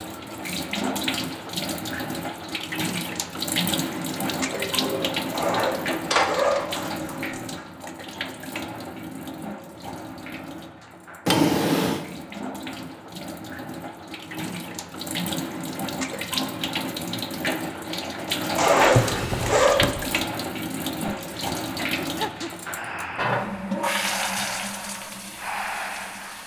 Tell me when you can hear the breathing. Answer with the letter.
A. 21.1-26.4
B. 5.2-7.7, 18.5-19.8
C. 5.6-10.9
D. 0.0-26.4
A.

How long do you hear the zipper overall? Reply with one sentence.
The zipper can be heard for 4 seconds in total.